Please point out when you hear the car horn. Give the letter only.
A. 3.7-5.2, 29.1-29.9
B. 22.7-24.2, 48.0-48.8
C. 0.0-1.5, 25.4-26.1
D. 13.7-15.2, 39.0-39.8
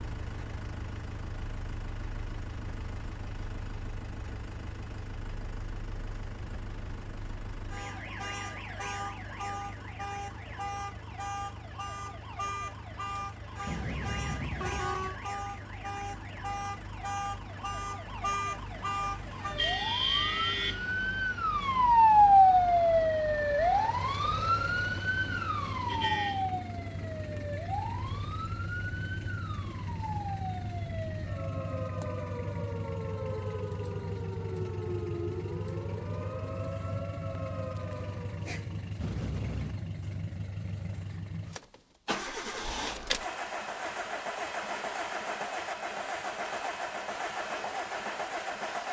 D.